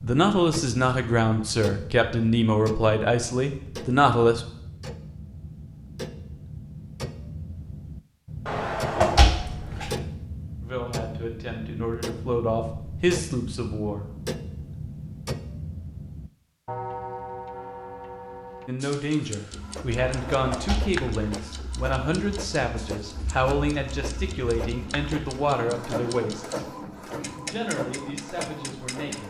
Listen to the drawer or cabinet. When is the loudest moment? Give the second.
9 s.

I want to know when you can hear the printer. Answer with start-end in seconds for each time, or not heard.
19.5-29.2.